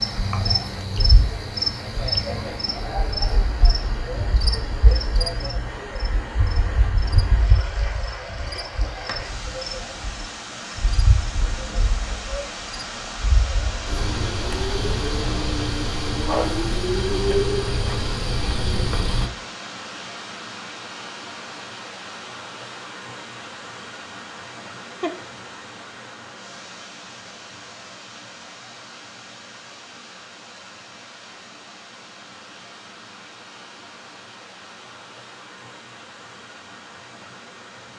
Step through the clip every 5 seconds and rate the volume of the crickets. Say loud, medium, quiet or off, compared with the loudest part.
loud, medium, medium, loud, off, off, off, off.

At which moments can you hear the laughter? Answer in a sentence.
You can hear the laughter from 24.6 to 25.2 s.